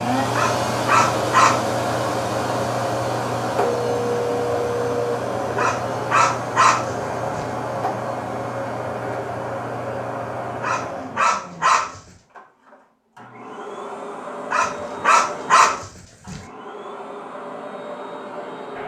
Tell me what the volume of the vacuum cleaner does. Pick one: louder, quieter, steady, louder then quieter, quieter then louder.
quieter.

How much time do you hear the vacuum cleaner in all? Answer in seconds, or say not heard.
19 s.